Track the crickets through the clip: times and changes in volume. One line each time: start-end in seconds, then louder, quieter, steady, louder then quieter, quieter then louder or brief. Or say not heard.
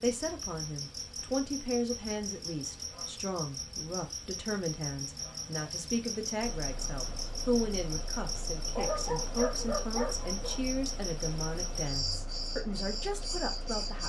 0.0-14.0 steady.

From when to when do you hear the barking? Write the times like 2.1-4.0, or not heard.
8.8-10.6.